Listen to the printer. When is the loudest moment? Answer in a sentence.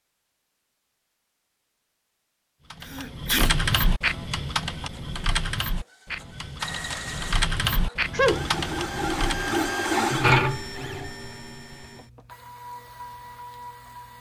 The loudest moment of the printer is at 10 seconds.